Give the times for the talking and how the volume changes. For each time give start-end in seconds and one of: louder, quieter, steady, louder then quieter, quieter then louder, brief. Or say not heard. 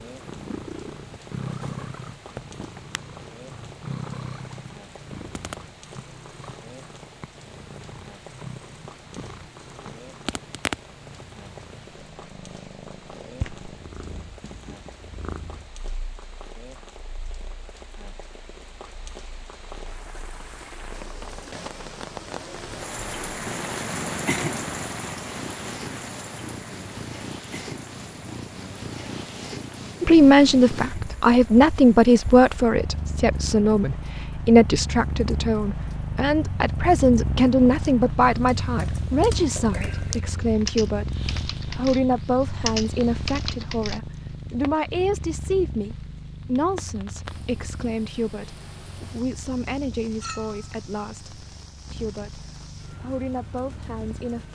30.0-54.5 quieter.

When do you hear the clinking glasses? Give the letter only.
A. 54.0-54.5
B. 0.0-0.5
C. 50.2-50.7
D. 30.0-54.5
C.